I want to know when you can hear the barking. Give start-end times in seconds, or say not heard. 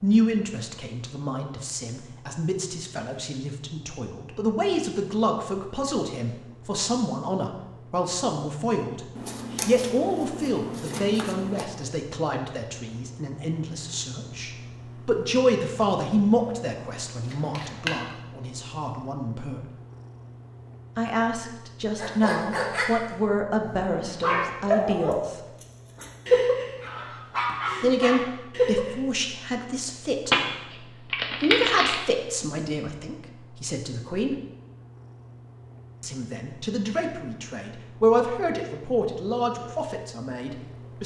21.9-22.9, 23.6-28.9.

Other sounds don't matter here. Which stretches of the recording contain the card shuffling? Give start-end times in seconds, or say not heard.
9.2-11.7, 17.3-18.1, 30.2-32.0.